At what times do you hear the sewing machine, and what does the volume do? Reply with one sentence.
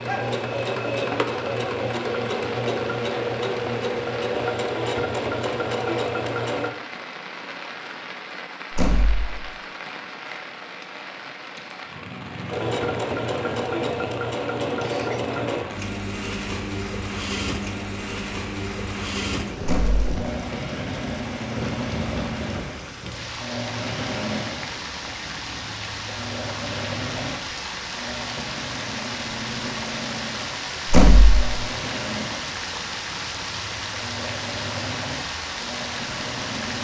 You can hear the sewing machine from 0.0 to 6.7 s, at a steady volume; and from 12.5 to 36.7 s, getting quieter.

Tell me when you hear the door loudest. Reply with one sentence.
The loudest moment of the door is at 31 seconds.